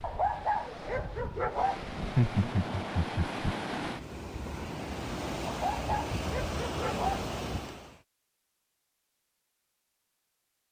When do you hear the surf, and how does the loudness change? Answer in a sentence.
You can hear the surf from 0.0 to 8.0 s, getting louder.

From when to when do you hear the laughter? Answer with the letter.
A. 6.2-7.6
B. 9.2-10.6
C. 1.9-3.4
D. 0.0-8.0
C.